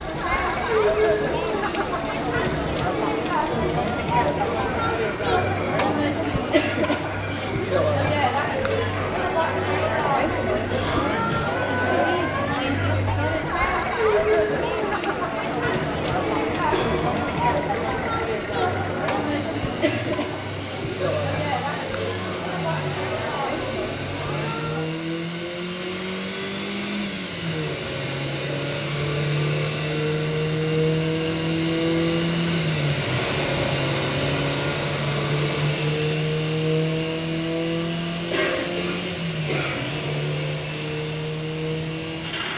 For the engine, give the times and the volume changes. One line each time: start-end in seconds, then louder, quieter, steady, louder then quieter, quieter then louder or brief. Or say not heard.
0.0-42.5 louder.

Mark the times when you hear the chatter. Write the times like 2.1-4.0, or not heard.
0.0-24.9.